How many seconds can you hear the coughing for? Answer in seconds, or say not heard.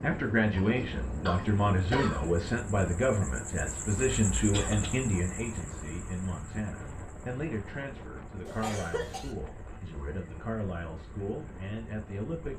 3 s.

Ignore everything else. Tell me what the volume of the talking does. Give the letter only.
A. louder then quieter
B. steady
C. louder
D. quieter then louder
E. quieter
E.